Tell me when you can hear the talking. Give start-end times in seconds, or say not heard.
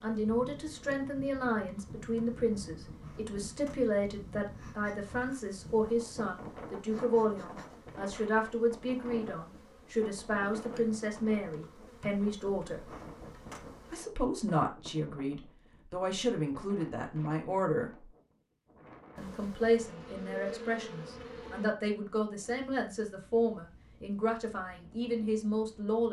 0.0-12.8, 13.9-18.1, 19.1-26.0.